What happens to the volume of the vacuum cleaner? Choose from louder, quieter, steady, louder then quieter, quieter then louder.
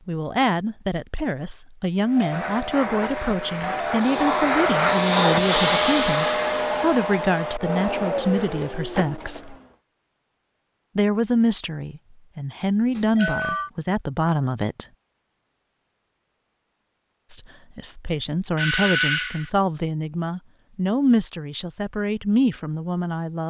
louder then quieter.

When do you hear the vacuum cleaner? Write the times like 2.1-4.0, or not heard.
2.0-9.8.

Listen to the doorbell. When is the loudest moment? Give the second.
19 s.